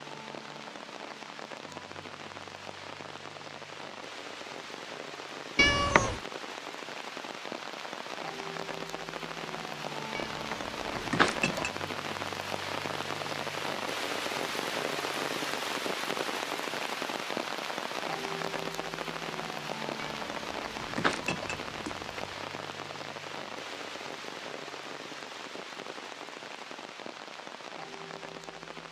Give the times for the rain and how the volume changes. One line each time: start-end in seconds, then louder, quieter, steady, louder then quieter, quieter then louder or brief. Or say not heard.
0.0-28.8 louder then quieter.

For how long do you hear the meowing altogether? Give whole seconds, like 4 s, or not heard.
4 s.